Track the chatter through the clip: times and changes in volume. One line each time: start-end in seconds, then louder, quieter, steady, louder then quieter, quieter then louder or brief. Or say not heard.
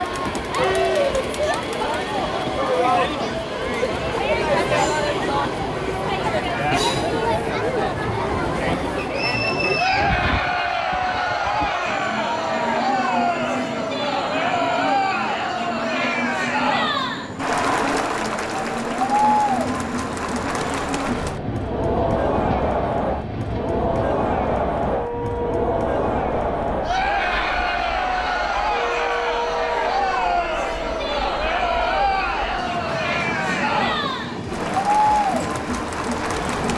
0.0-36.7 steady.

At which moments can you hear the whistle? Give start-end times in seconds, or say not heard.
8.9-10.2.